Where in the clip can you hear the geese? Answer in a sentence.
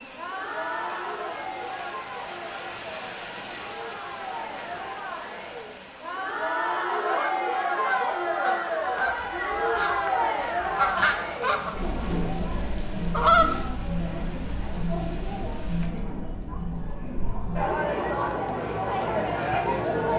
The geese can be heard from 7.0 to 13.7 s.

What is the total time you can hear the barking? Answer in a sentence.
You can't hear the barking here.